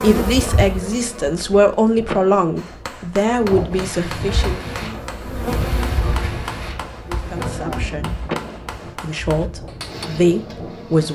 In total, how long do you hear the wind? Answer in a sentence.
You can hear the wind for 8 seconds altogether.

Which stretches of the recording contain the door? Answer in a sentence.
You can hear the door from 2.0 to 2.9 s and from 8.2 to 8.9 s.